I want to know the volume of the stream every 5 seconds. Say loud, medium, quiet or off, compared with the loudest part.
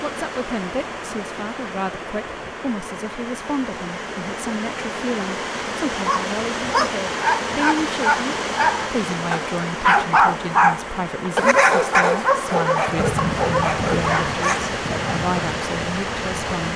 medium, loud, loud, loud.